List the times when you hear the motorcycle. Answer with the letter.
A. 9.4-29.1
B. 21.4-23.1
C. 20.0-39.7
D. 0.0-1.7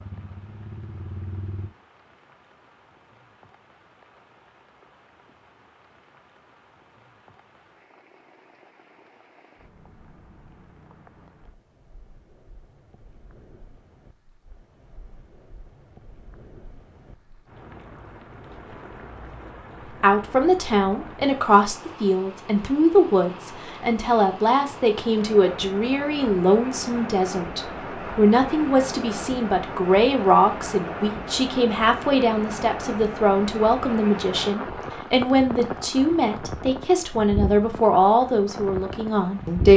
D.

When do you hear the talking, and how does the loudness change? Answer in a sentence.
The talking can be heard from 20.0 to 39.7 s, at a steady volume.